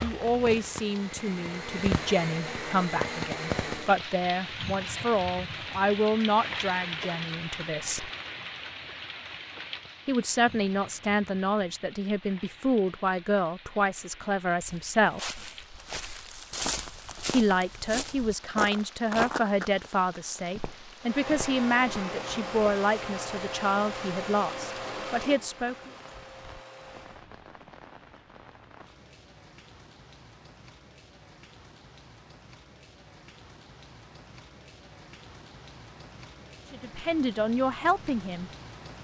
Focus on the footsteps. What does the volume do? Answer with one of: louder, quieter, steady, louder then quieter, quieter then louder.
louder then quieter.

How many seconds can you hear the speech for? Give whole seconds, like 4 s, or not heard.
24 s.